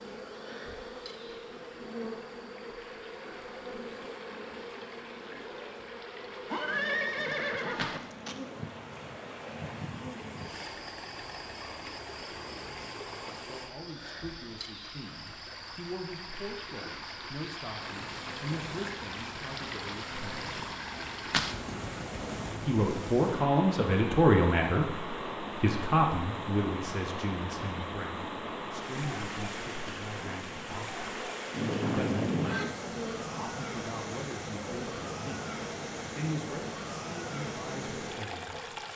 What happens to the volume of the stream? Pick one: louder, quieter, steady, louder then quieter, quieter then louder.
louder.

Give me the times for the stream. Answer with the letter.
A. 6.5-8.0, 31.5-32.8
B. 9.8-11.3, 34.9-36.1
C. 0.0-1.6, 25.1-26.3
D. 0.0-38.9
D.